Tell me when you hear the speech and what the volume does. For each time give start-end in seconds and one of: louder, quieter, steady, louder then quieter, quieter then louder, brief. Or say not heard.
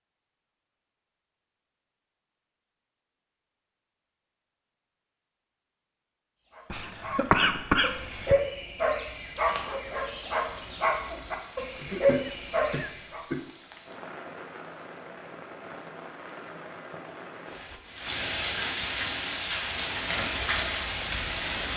not heard.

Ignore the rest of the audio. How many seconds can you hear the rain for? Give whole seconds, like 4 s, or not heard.
13 s.